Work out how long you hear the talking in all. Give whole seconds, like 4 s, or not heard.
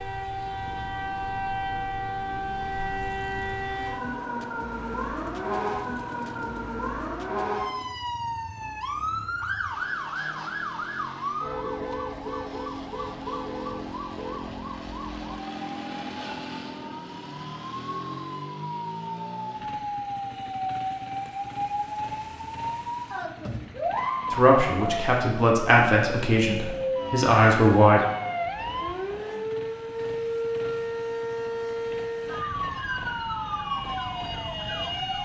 4 s.